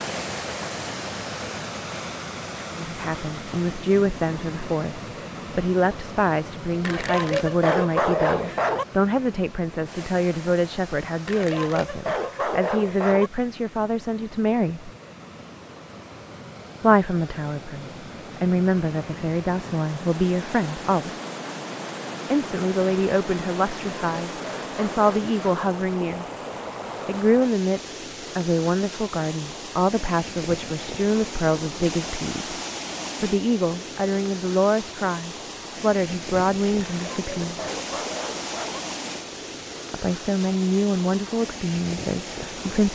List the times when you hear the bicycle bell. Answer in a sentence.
You can't hear the bicycle bell here.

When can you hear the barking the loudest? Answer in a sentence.
The loudest moment of the barking is at 8 seconds.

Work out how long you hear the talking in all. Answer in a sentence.
The talking can be heard for 33 seconds in total.